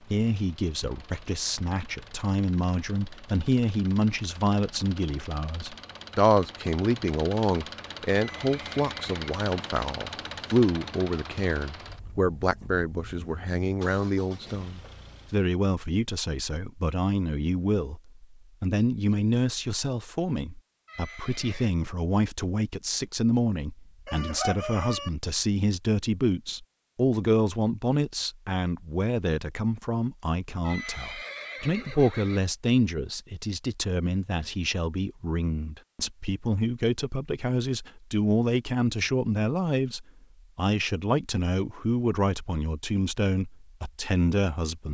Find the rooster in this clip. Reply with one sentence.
The rooster can be heard from 24.1 to 25.1 s.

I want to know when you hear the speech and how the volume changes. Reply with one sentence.
The speech can be heard from 0.1 to 44.8 s, at a steady volume.